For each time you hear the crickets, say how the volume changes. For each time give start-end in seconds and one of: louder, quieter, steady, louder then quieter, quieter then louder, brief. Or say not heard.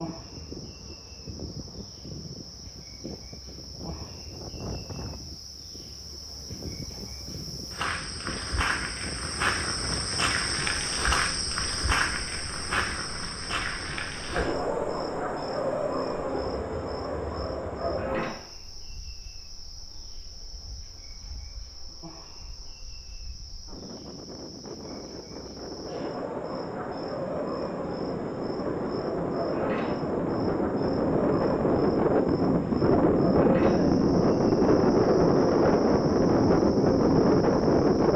0.0-38.1 louder then quieter.